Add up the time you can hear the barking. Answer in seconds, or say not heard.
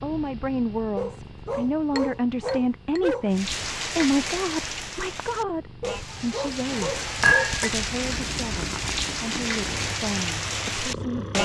4 s.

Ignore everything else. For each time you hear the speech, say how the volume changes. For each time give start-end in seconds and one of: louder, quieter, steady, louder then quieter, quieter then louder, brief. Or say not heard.
0.0-11.4 quieter.